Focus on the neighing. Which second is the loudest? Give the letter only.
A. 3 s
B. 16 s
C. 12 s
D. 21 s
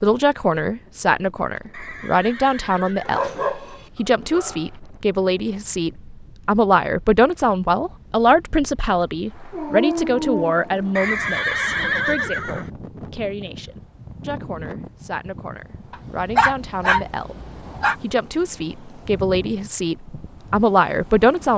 C.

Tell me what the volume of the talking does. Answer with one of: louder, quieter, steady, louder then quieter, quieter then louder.
quieter then louder.